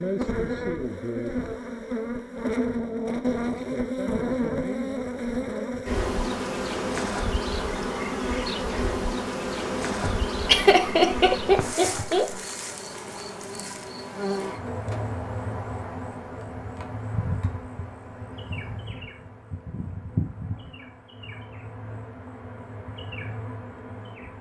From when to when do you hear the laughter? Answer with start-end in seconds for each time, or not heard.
10.0-12.3.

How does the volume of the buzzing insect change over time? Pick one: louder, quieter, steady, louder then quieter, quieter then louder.
quieter.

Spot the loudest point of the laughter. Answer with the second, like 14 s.
11 s.